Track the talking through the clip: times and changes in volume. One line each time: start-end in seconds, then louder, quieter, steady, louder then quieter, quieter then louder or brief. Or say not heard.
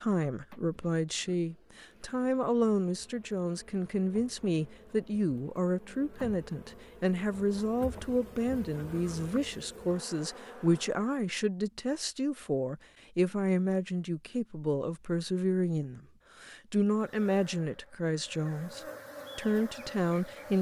0.0-20.5 steady.